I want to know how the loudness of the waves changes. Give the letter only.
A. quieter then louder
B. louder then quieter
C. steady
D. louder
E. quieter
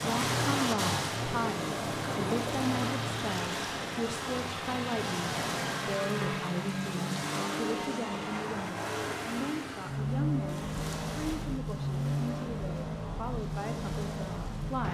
E.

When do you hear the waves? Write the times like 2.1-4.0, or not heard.
0.0-14.8.